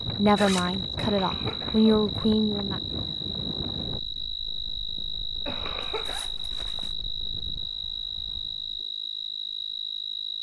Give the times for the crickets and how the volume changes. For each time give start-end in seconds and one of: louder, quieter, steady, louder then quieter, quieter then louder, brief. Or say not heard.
0.0-10.3 steady.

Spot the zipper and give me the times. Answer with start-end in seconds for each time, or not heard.
0.3-0.8, 5.8-7.0.